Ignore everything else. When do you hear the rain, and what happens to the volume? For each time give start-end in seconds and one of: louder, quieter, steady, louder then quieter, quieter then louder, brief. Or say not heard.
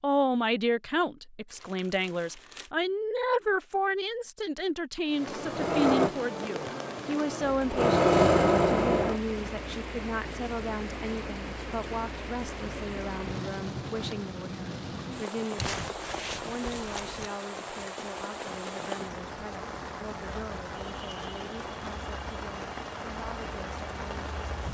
5.0-24.6 steady.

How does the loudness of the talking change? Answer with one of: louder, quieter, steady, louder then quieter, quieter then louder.
quieter.